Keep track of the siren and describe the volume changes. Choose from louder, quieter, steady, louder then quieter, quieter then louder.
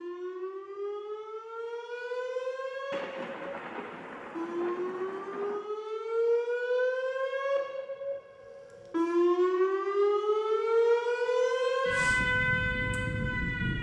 louder.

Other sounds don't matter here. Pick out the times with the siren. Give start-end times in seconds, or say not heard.
0.0-13.7.